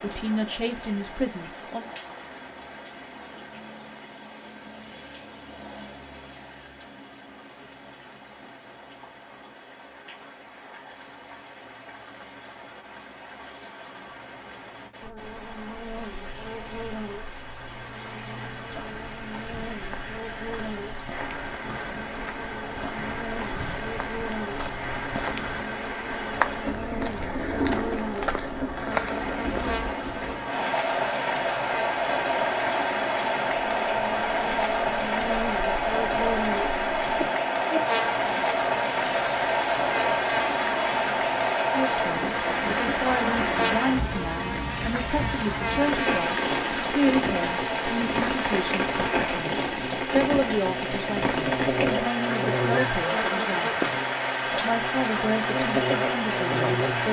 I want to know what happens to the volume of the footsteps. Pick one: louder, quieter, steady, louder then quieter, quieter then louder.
louder.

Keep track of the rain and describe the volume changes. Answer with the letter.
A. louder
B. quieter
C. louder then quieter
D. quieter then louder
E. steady
A.